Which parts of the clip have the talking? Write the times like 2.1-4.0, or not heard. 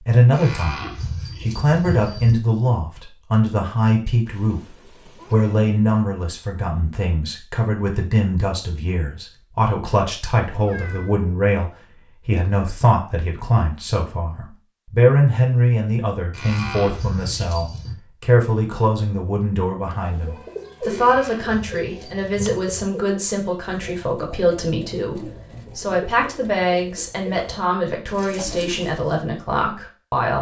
0.0-30.3.